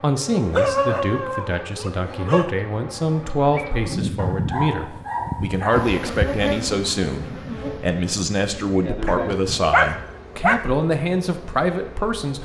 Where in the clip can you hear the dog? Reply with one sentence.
The dog can be heard from 0.5 to 2.5 s, from 4.2 to 6.0 s and from 9.1 to 10.7 s.